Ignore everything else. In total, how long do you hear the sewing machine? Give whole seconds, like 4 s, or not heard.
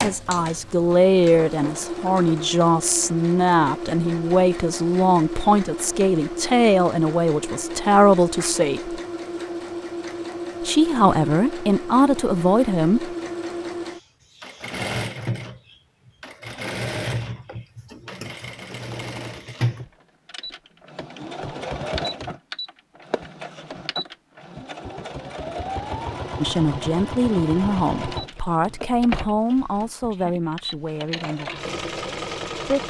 33 s.